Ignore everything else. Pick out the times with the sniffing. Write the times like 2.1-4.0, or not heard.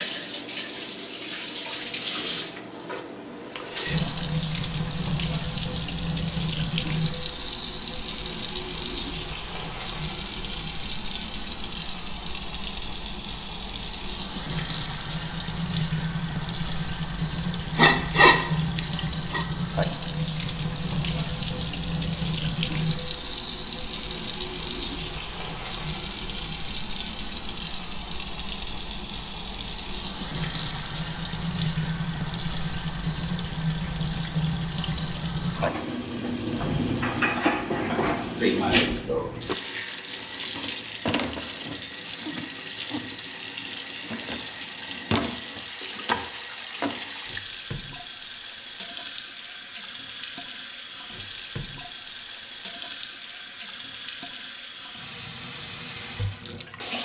17.8-19.4, 37.9-39.3.